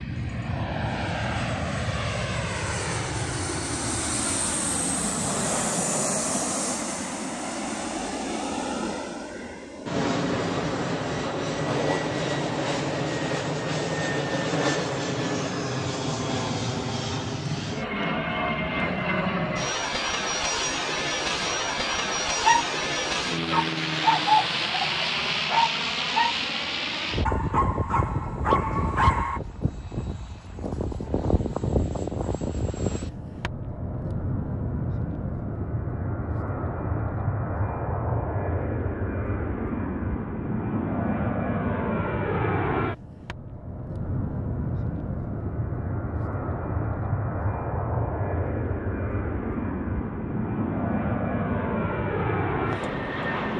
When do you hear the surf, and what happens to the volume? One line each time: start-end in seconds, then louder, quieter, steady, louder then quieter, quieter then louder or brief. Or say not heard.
not heard.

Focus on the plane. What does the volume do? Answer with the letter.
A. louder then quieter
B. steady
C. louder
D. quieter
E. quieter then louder
B.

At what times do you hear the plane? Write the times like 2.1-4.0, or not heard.
0.0-53.5.